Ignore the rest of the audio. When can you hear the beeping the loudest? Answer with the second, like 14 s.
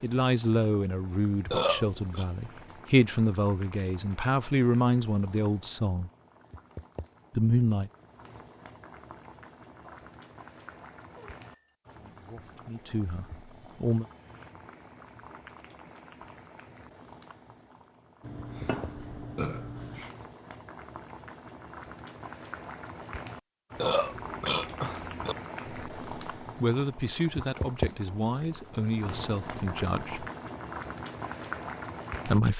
11 s.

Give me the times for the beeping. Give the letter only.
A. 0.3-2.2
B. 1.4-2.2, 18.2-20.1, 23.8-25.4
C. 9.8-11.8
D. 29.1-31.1
C.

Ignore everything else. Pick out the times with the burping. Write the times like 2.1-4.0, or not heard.
1.4-2.2, 18.2-20.1, 23.8-25.4.